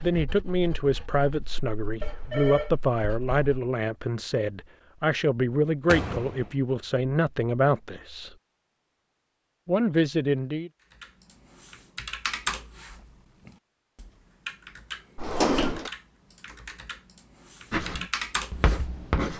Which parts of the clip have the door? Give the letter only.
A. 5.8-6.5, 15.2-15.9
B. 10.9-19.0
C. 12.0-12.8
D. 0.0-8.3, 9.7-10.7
A.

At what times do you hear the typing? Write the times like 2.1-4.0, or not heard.
10.9-19.0.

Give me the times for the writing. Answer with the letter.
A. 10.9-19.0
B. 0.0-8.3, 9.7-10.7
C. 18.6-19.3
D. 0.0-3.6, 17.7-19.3
D.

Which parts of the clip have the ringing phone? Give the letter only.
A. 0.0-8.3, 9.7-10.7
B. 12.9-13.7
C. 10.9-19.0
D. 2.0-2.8
D.